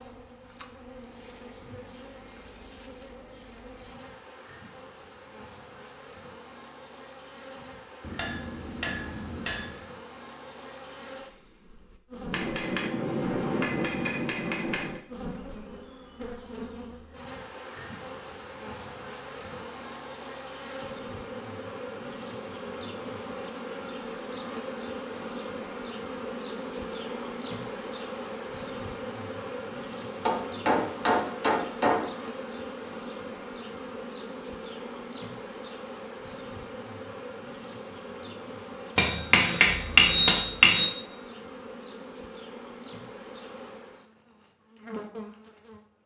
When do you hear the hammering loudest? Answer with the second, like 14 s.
40 s.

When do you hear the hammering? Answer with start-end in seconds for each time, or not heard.
8.0-9.8, 12.3-15.0, 30.2-32.1, 39.0-40.9.